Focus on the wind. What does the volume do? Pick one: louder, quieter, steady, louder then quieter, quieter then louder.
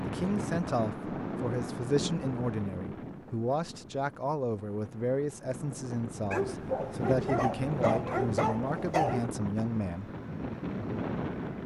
quieter then louder.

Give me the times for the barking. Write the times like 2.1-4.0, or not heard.
6.3-9.2.